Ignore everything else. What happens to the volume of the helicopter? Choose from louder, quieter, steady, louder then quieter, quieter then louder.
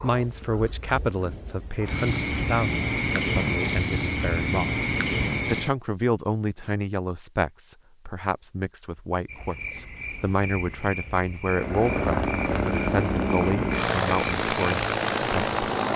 steady.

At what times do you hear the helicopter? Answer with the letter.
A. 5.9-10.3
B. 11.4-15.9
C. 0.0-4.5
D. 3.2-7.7
B.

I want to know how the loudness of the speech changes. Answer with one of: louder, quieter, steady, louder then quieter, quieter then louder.
steady.